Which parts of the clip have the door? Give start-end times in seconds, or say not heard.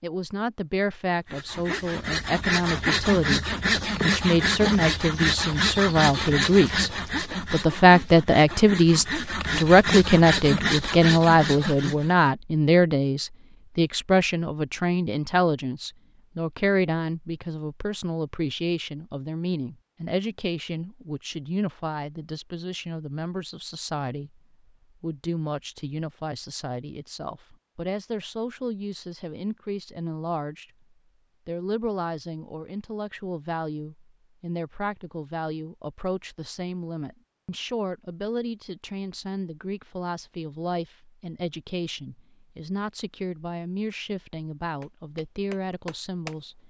not heard.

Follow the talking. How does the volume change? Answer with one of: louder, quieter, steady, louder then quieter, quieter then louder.
quieter.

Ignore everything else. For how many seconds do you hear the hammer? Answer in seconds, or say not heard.
2 s.